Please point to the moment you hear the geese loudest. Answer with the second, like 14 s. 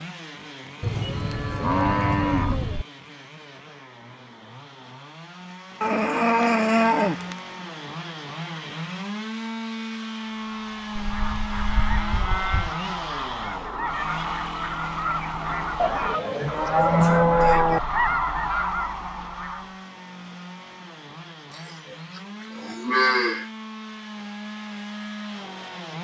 18 s.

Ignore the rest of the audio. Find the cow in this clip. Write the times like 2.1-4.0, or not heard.
0.8-2.9, 5.8-7.3, 10.9-12.8, 15.8-17.8, 21.6-23.4.